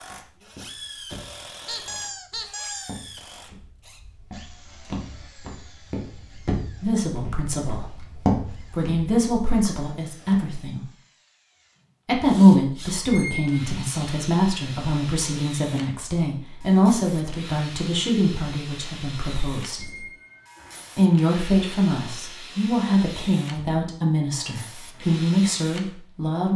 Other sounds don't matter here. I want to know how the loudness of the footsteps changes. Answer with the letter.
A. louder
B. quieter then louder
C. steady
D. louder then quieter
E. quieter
A.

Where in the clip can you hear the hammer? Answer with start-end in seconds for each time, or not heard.
not heard.